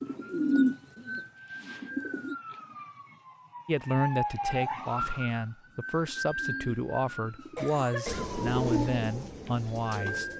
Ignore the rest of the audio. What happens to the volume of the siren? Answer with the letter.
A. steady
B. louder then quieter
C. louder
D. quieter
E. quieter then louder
B.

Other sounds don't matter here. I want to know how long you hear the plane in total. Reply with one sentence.
You can't hear the plane here.